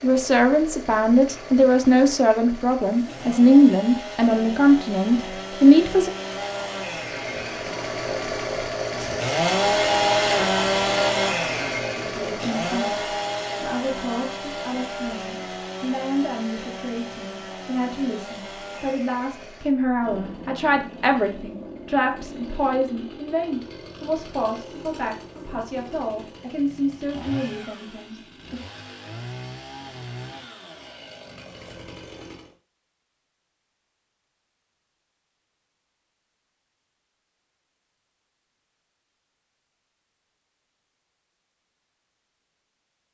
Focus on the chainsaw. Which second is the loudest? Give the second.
10 s.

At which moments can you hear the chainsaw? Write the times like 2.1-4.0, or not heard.
0.0-32.5.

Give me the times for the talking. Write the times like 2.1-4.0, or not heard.
0.0-6.1, 12.0-28.6.